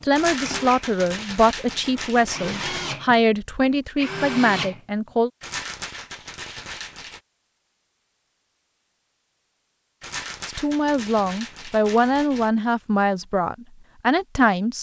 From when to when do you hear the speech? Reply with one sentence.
You can hear the speech from 0.0 to 5.3 s and from 10.4 to 14.7 s.